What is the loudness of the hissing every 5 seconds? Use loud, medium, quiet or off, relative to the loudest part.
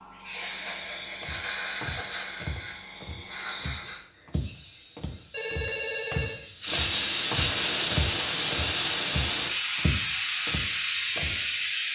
medium, loud, loud.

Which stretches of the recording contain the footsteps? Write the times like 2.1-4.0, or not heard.
0.8-11.4.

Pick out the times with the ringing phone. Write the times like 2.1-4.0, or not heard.
5.3-6.4.